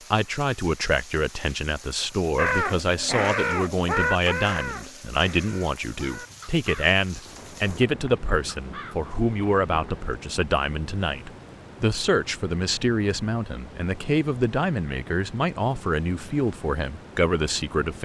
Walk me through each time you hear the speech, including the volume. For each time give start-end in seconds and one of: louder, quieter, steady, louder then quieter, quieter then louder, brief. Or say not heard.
0.1-18.0 steady.